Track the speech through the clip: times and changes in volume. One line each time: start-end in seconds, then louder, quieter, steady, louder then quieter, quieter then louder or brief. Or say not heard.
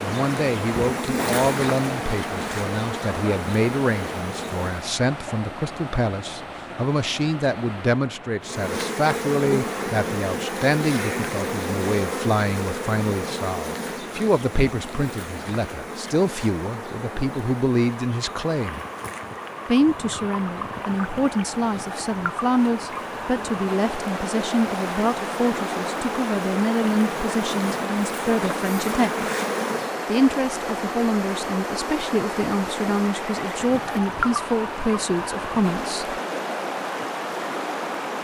0.0-18.9 steady
19.6-29.2 steady
30.1-36.2 steady.